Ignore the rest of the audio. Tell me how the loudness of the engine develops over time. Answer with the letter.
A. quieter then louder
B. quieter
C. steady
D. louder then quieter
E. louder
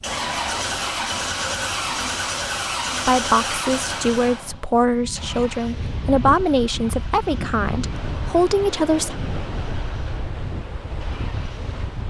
B.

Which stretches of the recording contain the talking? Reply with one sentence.
You can hear the talking from 3.0 to 9.2 s.